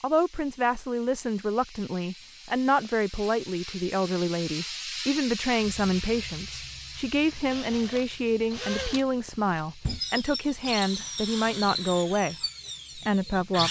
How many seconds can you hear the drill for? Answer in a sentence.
The drill can be heard for 6 seconds in total.